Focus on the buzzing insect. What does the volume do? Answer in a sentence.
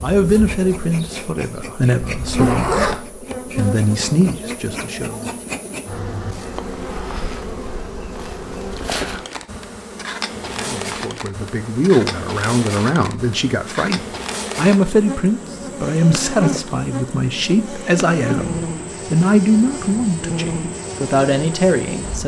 The loudness of the buzzing insect stays about the same.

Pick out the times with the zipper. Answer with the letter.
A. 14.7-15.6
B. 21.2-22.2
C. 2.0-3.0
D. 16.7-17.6
C.